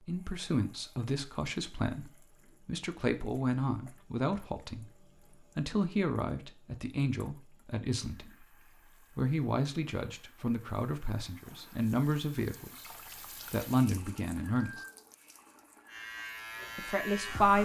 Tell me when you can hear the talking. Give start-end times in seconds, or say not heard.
0.1-8.4, 9.2-12.7, 13.5-14.8, 16.8-17.5.